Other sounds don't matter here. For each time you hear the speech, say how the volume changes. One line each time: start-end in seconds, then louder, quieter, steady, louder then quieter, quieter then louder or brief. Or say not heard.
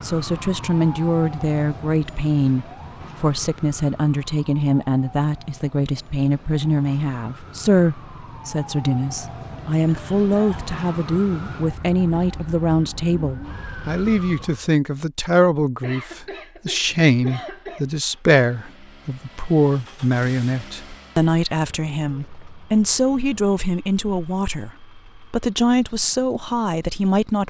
0.0-27.4 steady.